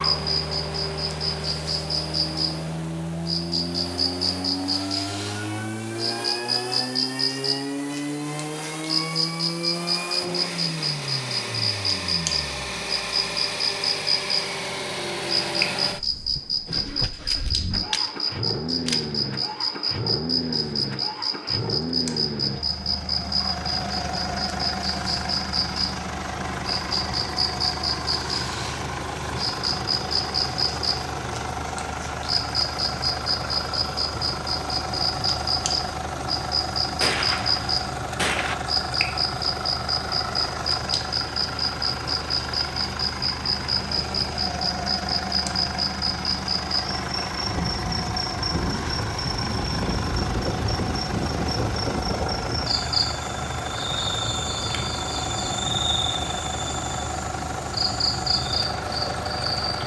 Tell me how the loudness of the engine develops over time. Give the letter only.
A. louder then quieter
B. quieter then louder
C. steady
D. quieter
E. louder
C.